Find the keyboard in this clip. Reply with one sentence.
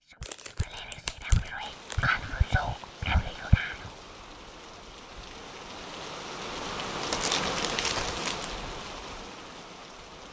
You can't hear the keyboard here.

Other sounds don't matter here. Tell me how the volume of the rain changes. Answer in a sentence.
The loudness of the rain goes up, then down.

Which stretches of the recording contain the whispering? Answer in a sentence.
You can hear the whispering from 0.0 to 3.9 s.